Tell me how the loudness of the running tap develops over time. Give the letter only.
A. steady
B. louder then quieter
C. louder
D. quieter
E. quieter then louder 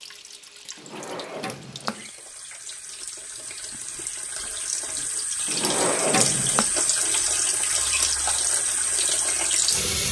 C.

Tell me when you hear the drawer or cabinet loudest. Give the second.
6 s.